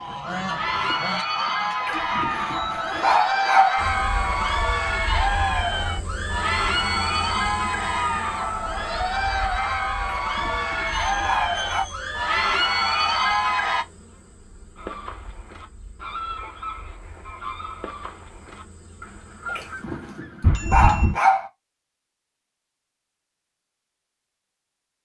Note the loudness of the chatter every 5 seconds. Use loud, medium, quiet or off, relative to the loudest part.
loud, loud, loud, off, off.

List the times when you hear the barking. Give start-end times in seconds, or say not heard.
1.8-3.8, 10.2-11.8, 19.4-21.5.